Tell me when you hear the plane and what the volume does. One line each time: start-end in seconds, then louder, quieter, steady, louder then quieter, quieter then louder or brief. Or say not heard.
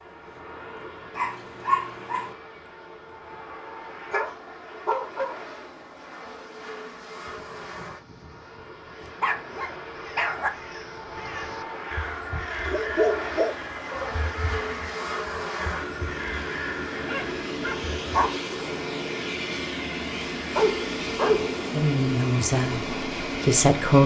0.0-24.0 louder.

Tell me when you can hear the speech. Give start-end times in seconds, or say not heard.
21.7-24.0.